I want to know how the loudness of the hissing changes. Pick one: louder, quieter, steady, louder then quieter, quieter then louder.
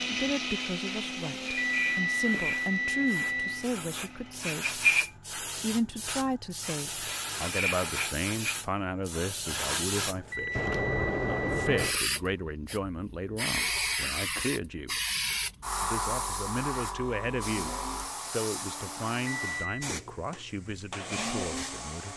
quieter.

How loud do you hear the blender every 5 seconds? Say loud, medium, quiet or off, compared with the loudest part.
loud, off, off, medium, loud.